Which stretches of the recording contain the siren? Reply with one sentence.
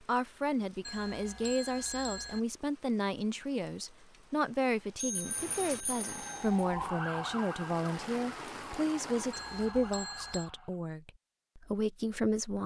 The siren can be heard from 6.3 to 10.8 s.